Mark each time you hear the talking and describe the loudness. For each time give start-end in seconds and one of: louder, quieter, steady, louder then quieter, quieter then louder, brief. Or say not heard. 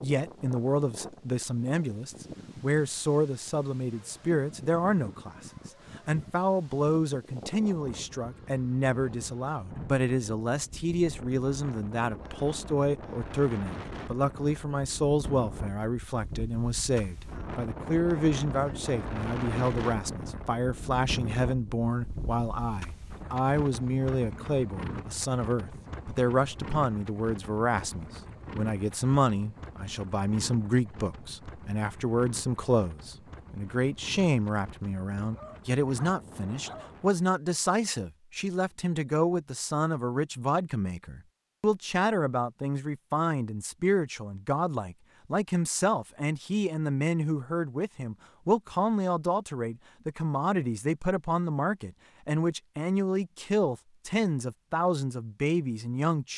0.0-56.3 steady.